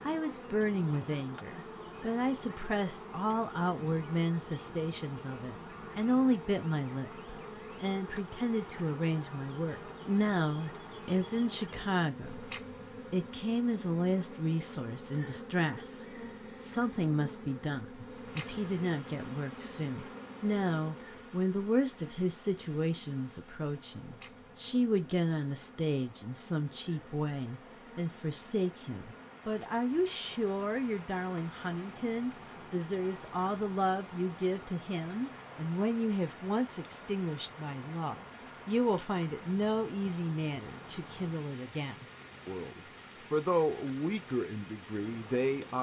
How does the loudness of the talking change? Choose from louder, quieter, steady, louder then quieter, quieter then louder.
steady.